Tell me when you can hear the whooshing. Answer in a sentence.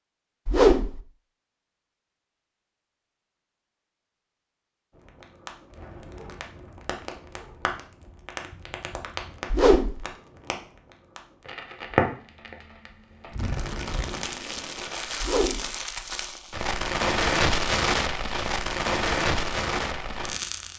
The whooshing can be heard from 0.5 to 1.0 s, from 9.5 to 10.1 s and from 15.2 to 15.8 s.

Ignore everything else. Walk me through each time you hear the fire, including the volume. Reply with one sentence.
The fire can be heard from 5.0 to 20.7 s, getting louder.